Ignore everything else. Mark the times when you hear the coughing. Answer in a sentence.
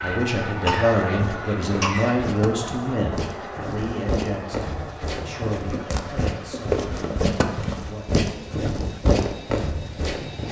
You can hear the coughing from 0.7 to 2.1 s and from 5.7 to 6.8 s.